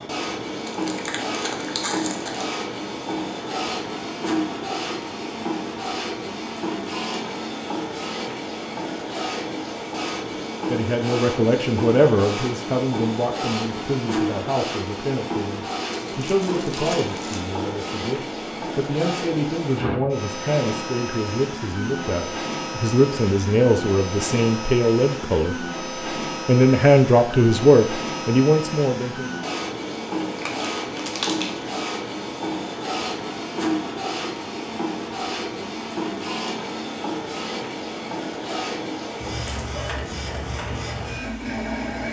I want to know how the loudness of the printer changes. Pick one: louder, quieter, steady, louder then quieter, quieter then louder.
steady.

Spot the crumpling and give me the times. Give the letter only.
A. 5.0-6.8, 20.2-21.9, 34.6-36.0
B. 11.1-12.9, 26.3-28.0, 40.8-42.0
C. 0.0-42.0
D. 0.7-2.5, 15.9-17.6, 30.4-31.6
D.